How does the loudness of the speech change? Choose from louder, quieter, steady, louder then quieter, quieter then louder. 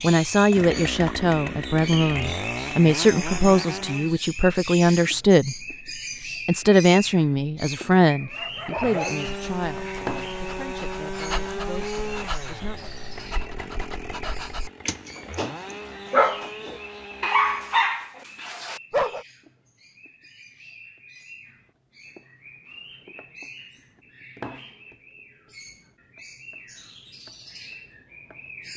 quieter.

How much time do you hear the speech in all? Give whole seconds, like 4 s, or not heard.
12 s.